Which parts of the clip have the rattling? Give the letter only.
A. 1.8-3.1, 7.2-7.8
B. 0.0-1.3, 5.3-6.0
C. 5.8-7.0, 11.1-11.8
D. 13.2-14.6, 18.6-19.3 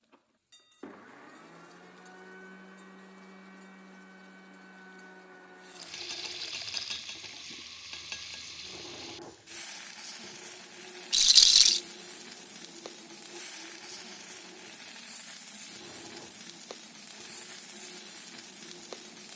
C.